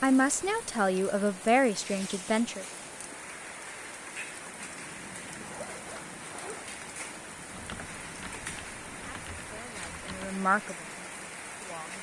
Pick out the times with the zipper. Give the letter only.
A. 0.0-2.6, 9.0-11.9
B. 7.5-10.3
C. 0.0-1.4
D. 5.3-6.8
D.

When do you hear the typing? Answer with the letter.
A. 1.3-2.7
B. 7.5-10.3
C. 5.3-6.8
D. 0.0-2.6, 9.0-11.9
B.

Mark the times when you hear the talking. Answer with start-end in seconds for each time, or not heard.
0.0-2.6, 9.0-11.9.